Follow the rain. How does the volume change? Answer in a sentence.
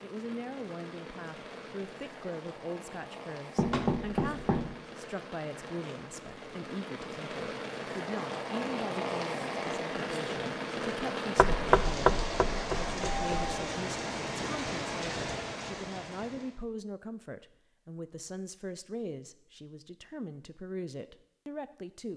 The volume of the rain goes up.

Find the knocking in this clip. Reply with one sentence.
You can hear the knocking from 3.5 to 4.8 s and from 11.3 to 13.6 s.